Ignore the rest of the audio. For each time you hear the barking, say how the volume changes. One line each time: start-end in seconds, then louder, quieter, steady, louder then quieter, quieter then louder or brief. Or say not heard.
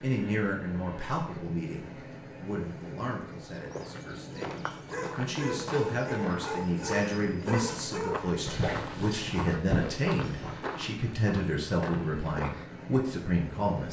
4.3-10.7 steady.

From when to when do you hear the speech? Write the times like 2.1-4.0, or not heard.
0.0-13.8.